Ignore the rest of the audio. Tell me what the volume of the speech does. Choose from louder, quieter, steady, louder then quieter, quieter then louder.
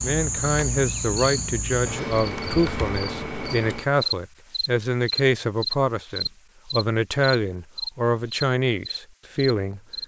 steady.